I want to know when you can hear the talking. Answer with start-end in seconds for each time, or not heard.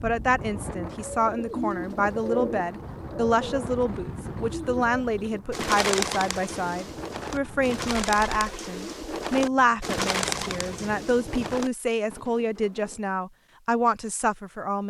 0.0-14.8.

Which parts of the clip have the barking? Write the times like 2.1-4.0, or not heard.
not heard.